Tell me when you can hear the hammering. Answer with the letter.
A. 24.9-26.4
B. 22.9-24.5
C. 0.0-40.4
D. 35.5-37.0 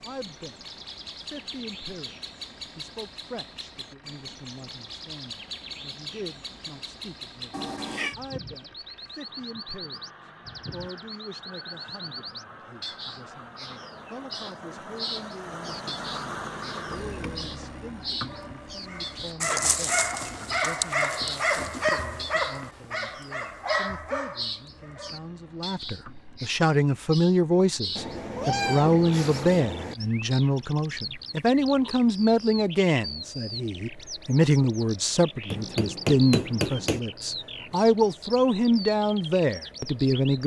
D.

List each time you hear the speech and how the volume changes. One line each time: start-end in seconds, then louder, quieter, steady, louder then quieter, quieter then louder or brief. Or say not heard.
0.0-40.4 louder.